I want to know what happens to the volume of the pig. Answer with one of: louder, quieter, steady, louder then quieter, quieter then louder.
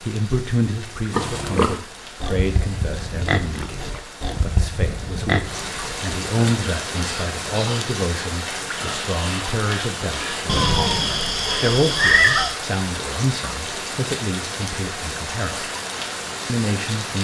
quieter.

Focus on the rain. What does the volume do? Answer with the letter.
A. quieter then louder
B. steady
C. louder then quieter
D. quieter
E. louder
E.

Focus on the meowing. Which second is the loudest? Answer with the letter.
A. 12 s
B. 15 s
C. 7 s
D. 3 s
A.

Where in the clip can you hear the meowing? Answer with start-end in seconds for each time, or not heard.
10.4-12.5.